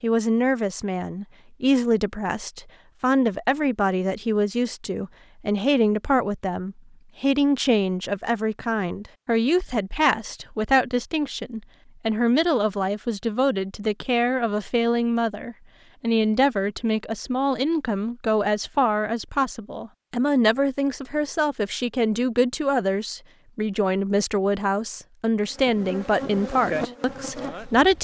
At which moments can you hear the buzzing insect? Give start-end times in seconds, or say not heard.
25.4-27.9.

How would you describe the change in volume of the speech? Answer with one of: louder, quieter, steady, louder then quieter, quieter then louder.
steady.